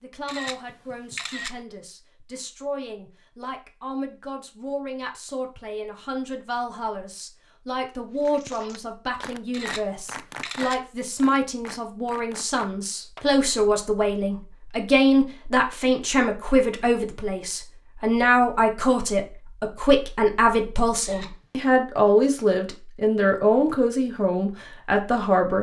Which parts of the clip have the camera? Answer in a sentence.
You can hear the camera from 0.2 to 1.6 s, from 9.5 to 10.8 s and from 21.0 to 21.7 s.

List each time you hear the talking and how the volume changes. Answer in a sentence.
You can hear the talking from 0.0 to 25.5 s, getting louder.